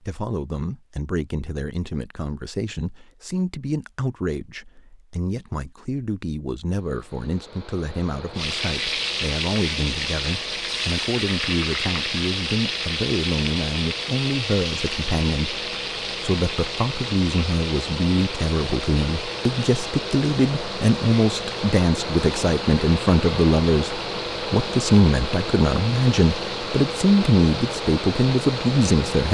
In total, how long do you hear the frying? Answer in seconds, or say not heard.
21 s.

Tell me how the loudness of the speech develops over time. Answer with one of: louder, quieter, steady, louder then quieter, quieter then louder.
louder.